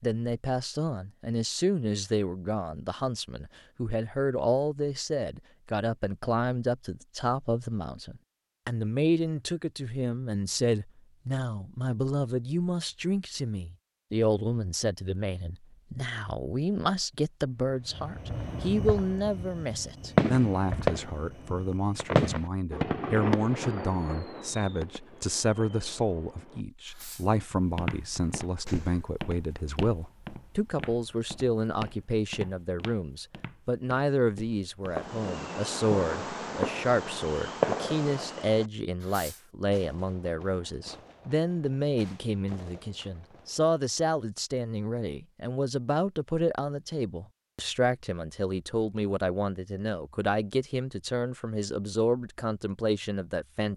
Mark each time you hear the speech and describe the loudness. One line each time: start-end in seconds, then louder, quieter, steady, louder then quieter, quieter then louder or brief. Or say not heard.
0.0-53.7 steady.